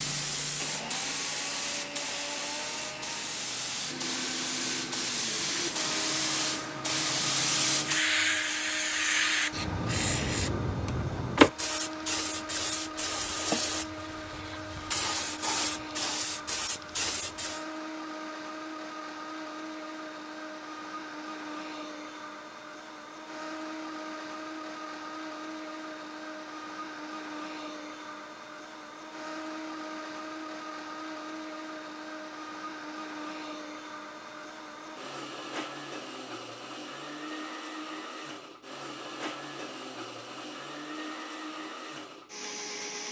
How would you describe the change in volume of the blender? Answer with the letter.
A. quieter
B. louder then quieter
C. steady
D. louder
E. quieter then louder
C.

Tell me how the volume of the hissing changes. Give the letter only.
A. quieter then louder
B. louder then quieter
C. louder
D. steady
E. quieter
B.